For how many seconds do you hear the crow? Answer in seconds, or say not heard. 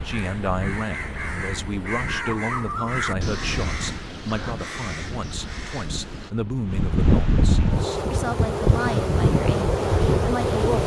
6 s.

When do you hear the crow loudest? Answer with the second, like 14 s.
3 s.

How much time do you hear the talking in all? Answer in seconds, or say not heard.
11 s.